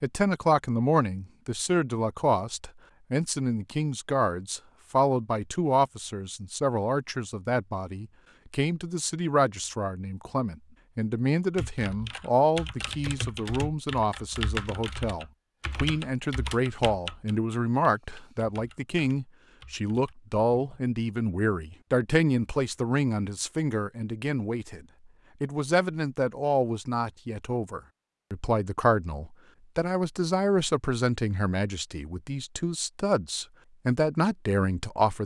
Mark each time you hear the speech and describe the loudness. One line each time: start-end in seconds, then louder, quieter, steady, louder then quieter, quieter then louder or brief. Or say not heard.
0.0-35.2 steady.